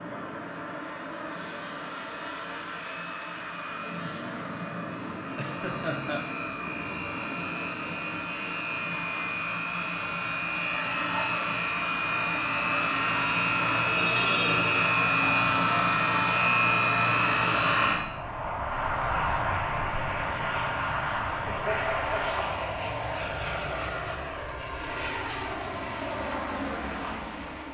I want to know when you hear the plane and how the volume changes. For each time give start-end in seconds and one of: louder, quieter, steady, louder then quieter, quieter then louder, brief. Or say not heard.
0.0-27.6 louder then quieter.